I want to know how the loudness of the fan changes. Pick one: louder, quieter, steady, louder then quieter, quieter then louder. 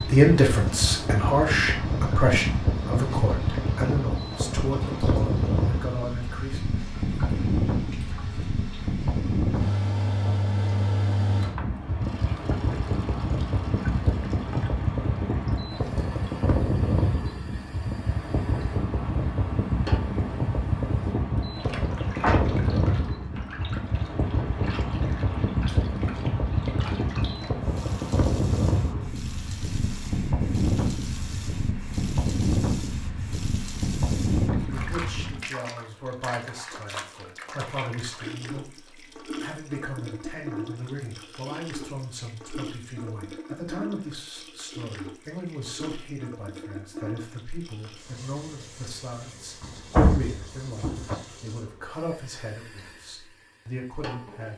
steady.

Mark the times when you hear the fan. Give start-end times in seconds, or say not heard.
0.0-35.4.